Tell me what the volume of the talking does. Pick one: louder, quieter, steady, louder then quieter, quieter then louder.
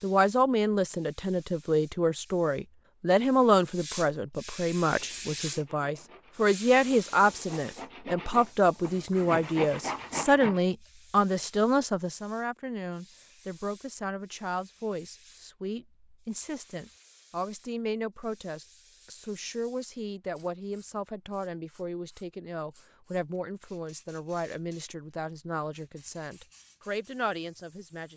quieter.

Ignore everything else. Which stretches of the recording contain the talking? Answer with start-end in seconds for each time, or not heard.
0.0-28.1.